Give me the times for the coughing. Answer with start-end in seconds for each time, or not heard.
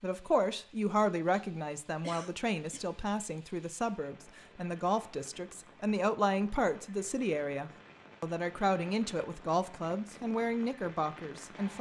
2.0-2.9.